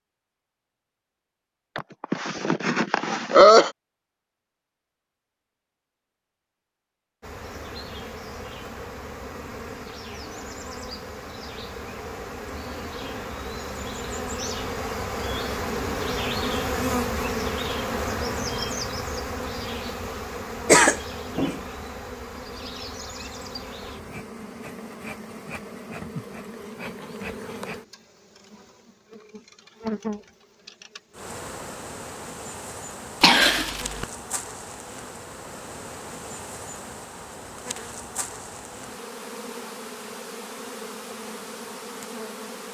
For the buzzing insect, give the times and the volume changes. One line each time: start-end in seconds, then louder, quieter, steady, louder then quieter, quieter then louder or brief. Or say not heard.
7.2-42.6 louder then quieter.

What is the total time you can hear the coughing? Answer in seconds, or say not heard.
4 s.